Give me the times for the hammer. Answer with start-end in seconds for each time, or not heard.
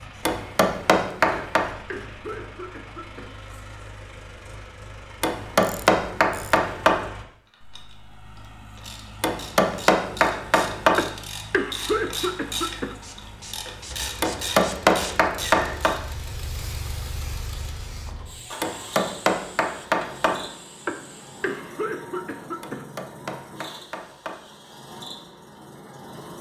0.2-1.7, 5.2-7.0, 9.2-11.1, 14.2-15.9, 18.6-20.4, 22.6-24.4.